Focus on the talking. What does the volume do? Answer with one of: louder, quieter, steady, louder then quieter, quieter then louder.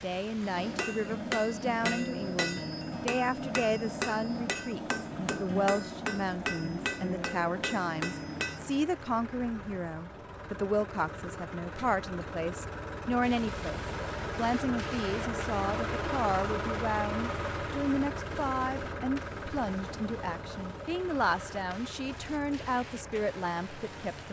steady.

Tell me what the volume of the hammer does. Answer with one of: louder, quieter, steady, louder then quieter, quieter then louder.
steady.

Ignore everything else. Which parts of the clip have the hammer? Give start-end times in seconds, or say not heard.
0.4-8.8.